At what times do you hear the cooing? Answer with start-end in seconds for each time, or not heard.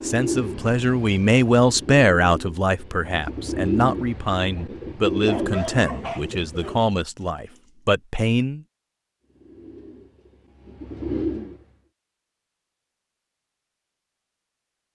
0.0-6.9, 9.2-11.8.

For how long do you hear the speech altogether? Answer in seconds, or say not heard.
9 s.